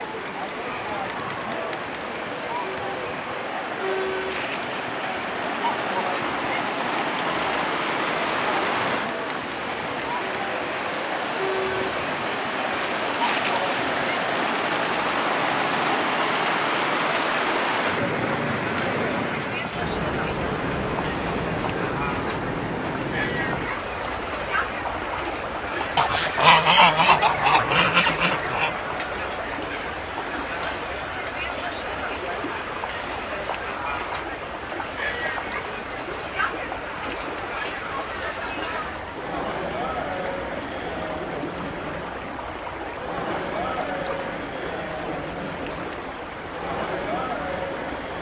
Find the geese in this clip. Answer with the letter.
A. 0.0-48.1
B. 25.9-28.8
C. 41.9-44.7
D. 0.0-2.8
B.